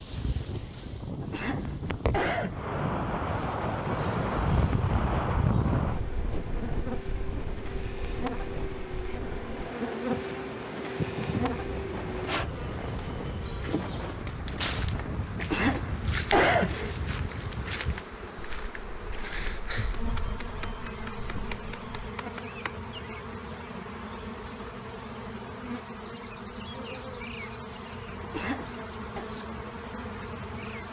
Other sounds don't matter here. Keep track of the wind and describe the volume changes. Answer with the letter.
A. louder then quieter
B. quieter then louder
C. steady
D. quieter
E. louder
D.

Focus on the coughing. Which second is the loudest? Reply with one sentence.
The volume of the coughing peaks at 16 seconds.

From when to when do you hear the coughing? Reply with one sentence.
You can hear the coughing from 1.2 to 2.8 s, from 15.3 to 16.9 s and from 28.2 to 29.2 s.